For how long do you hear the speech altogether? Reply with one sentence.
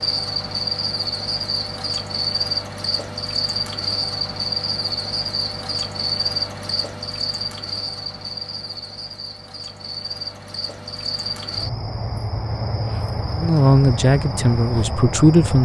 You can hear the speech for 2 seconds altogether.